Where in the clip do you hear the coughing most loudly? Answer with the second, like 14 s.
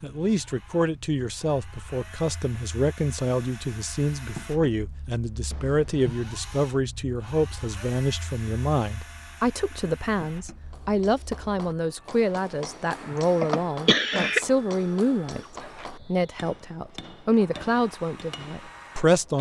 14 s.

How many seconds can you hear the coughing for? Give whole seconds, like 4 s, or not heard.
2 s.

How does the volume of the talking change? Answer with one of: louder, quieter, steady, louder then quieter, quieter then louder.
steady.